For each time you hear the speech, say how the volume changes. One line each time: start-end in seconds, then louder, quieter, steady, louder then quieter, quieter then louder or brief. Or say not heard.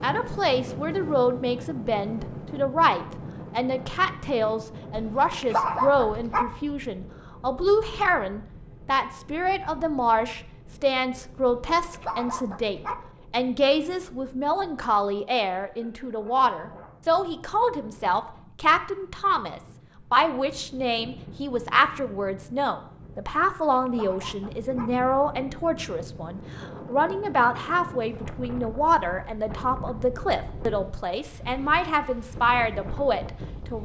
0.0-33.8 steady.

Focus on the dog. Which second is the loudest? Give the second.
6 s.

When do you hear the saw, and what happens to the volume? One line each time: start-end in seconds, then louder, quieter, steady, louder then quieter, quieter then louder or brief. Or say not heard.
not heard.